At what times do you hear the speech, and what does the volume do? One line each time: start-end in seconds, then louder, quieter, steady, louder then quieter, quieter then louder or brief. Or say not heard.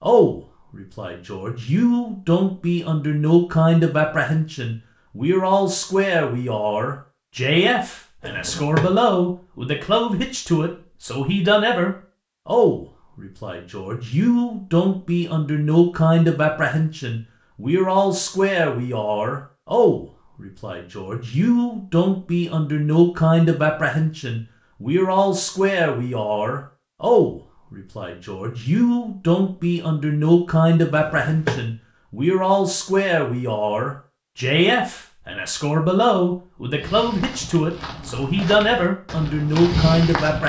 0.0-40.4 steady.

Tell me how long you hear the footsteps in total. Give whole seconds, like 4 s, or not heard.
4 s.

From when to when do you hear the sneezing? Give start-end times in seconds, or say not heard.
not heard.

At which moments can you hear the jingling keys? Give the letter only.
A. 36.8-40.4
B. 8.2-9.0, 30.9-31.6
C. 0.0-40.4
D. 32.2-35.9
B.